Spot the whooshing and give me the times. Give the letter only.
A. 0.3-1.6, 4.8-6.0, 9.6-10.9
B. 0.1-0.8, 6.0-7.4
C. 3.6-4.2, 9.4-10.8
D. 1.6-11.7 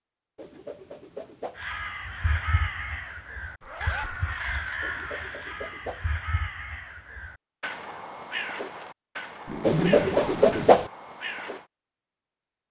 A.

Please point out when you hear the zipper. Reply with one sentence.
You can hear the zipper from 3.6 to 4.2 s and from 9.4 to 10.8 s.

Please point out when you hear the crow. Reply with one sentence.
The crow can be heard from 1.6 to 11.7 s.